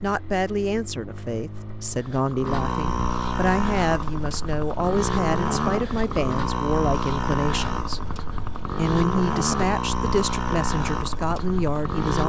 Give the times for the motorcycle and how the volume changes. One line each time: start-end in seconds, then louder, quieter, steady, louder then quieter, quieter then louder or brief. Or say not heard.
0.0-12.2 louder.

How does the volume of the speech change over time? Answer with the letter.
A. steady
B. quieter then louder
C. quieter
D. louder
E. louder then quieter
A.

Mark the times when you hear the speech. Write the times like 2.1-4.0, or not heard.
0.0-8.0, 8.6-12.2.